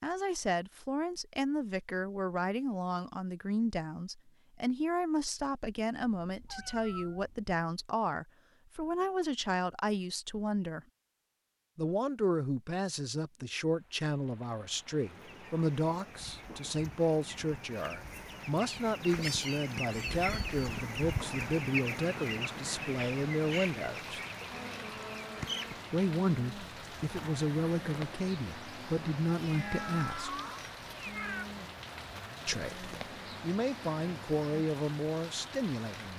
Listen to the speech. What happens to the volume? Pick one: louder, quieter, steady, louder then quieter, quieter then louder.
steady.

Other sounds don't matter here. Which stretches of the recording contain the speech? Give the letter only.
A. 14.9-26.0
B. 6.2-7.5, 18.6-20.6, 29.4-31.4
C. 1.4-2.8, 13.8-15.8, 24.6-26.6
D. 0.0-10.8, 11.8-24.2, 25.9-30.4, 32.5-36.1
D.